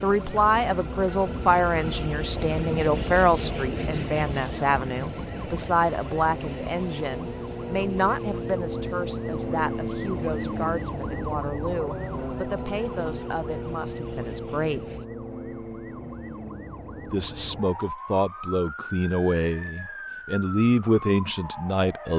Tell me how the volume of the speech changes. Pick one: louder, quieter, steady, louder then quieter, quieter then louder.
quieter then louder.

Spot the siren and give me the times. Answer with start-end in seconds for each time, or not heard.
0.0-22.1.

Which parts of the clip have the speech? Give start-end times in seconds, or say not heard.
0.0-14.9, 17.1-22.1.